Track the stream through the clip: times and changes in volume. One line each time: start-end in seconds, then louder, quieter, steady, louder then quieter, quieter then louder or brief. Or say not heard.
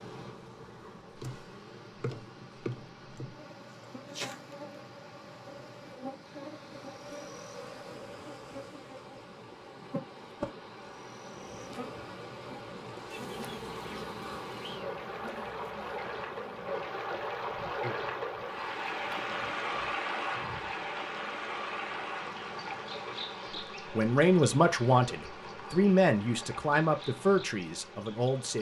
0.0-28.5 louder then quieter.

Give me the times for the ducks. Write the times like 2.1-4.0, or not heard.
13.1-14.8.